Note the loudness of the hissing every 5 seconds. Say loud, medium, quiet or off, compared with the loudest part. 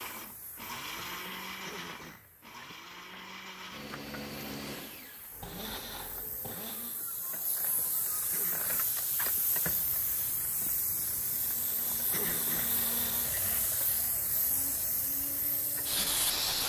quiet, medium, medium, loud.